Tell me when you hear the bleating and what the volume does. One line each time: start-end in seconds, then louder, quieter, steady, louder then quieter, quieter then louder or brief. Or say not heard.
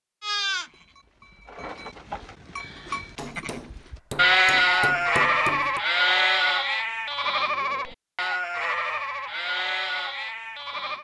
0.2-10.9 louder then quieter.